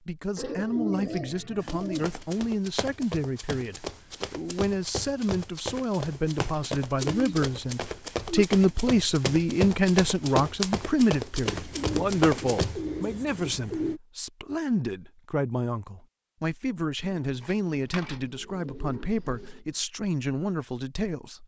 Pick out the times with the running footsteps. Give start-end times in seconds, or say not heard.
1.6-12.8.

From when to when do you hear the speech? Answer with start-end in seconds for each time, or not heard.
0.1-21.4.